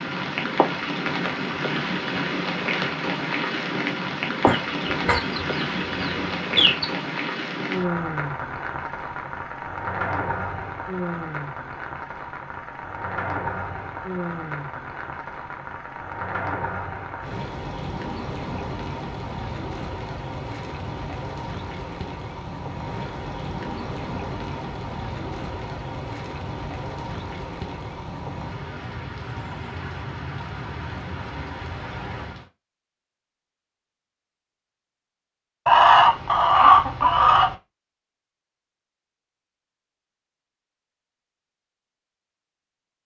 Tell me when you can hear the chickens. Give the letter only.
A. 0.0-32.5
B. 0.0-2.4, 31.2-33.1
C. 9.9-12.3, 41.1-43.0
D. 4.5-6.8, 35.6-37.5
D.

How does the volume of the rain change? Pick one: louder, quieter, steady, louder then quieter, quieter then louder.
quieter.